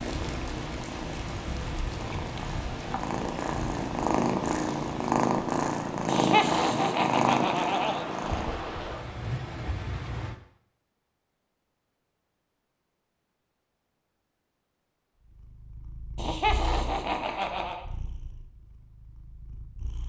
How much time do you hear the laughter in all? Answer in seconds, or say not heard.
4 s.